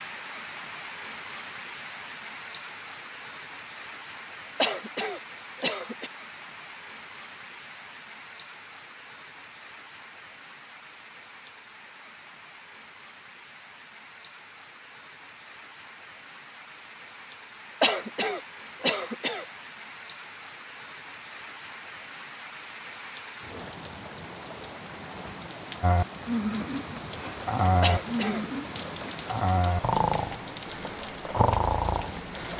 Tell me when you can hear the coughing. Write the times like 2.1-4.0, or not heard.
4.6-6.1, 17.8-19.4, 27.8-28.4.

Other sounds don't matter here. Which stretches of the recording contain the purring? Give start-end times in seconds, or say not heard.
not heard.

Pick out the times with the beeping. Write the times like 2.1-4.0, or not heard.
not heard.